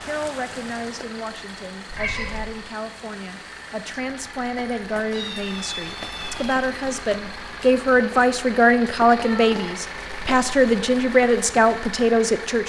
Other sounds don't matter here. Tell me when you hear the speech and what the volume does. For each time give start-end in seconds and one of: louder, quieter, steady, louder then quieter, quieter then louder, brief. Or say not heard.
0.0-12.6 louder.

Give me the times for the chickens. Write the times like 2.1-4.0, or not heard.
not heard.